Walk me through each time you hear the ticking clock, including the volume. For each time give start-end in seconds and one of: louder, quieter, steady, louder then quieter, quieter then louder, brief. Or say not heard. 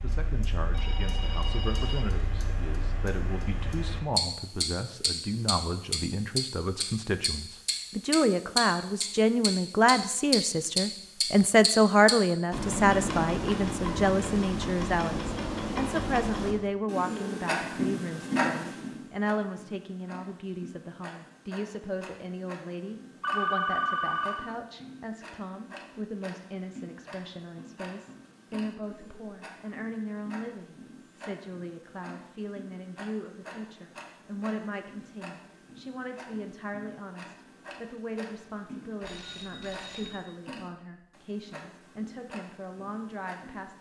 0.0-43.7 quieter.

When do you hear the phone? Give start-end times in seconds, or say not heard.
0.6-2.0, 23.2-24.5, 39.0-40.3.